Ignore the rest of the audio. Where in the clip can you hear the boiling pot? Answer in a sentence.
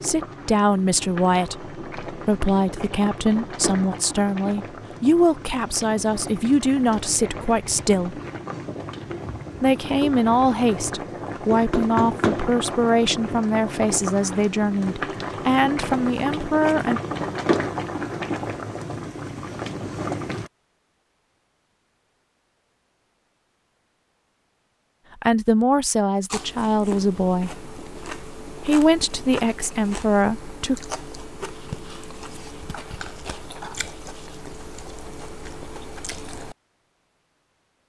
You can hear the boiling pot from 0.0 to 20.5 s.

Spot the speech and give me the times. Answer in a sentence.
The speech can be heard from 0.0 to 8.2 s, from 9.6 to 17.0 s, from 25.2 to 27.5 s and from 28.6 to 30.8 s.